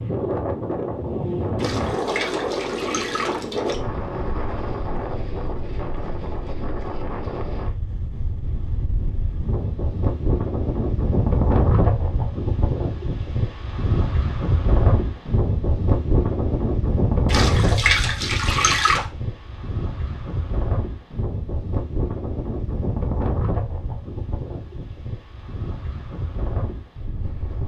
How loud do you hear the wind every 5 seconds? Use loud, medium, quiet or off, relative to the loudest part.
loud, medium, loud, loud, medium, medium.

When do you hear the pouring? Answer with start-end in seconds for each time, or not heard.
1.6-3.8, 17.2-19.1.